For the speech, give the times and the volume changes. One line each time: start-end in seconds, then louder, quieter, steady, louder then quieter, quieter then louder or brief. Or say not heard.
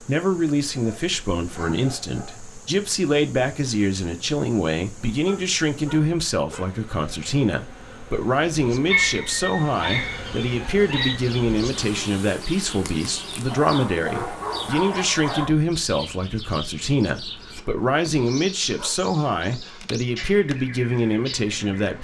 0.0-21.9 steady.